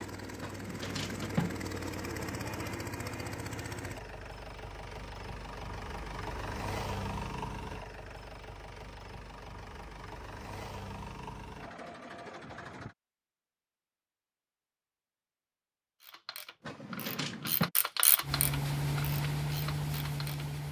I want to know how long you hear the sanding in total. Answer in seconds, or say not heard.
not heard.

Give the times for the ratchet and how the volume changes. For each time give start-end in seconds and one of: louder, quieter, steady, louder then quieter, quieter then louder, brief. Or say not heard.
16.0-20.4 louder then quieter.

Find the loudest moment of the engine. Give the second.
19 s.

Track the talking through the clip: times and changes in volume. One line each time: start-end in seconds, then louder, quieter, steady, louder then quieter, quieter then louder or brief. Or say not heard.
not heard.